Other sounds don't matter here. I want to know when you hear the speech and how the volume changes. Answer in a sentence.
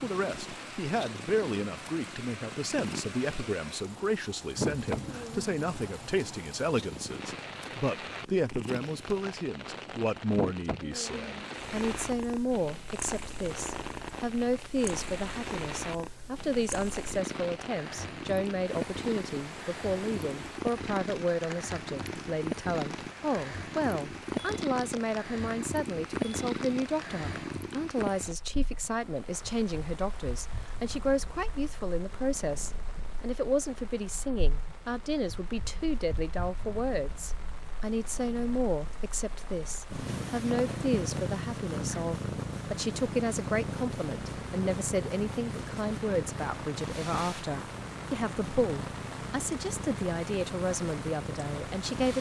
The speech can be heard from 0.0 to 52.1 s, at a steady volume.